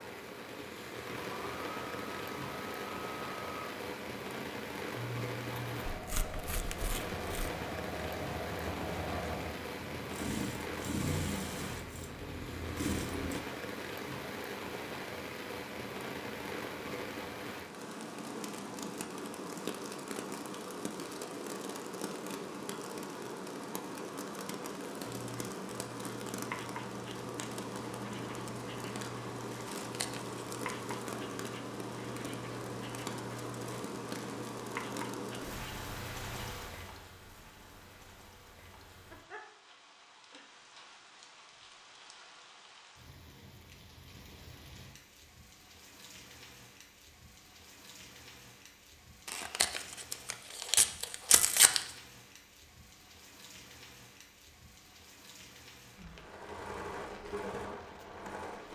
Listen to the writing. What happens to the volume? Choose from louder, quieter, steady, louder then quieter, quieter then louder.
steady.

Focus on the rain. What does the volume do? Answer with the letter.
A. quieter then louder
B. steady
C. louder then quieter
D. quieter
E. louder
D.